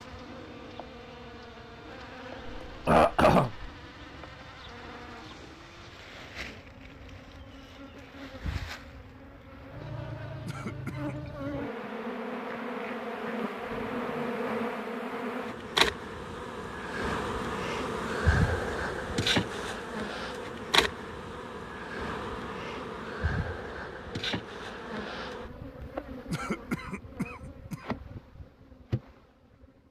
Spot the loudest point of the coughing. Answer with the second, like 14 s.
3 s.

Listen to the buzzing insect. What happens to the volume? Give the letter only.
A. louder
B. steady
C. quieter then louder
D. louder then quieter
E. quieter
D.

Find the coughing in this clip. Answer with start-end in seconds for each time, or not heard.
2.6-3.7, 10.4-11.2, 26.3-27.9.